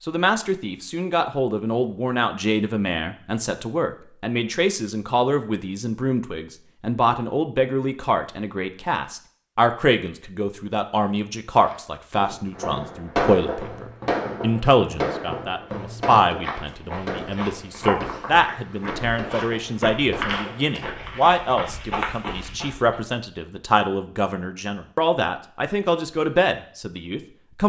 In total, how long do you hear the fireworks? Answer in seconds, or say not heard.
8 s.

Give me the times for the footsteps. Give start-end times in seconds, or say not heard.
11.6-23.0.